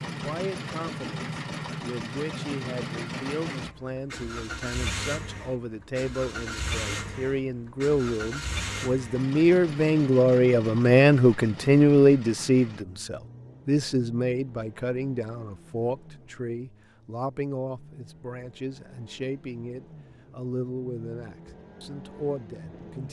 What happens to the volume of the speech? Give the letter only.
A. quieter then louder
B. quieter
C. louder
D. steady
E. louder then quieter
E.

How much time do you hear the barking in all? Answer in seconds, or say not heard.
not heard.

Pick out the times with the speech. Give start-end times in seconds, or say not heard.
0.1-23.0.